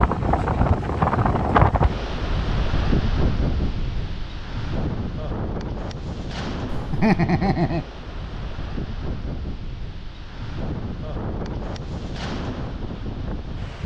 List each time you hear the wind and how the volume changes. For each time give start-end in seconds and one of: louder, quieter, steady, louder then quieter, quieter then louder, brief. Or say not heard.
0.0-13.8 quieter.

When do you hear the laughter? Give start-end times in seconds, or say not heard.
6.7-7.8.